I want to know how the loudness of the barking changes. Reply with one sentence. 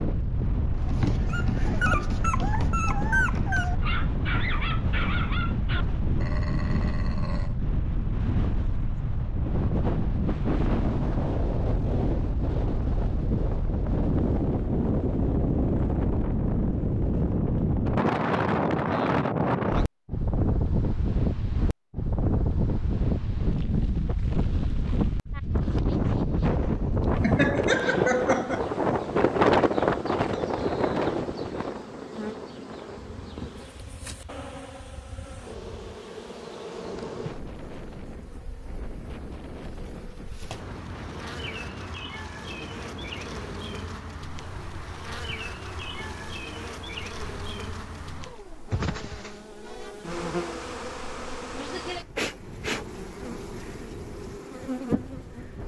The volume of the barking goes down.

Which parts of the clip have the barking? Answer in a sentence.
You can hear the barking from 0.8 to 7.5 s.